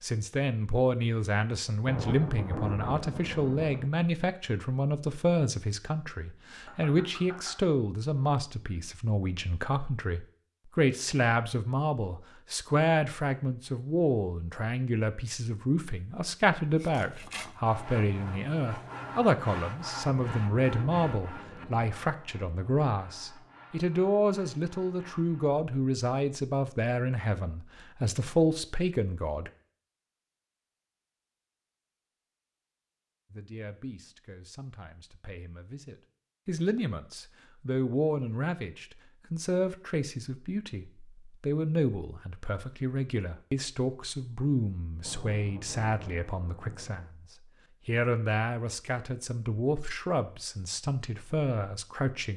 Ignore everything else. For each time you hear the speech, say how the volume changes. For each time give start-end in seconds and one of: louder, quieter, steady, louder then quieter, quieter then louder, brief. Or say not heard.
0.0-29.5 steady
33.3-47.2 louder
47.9-52.3 steady.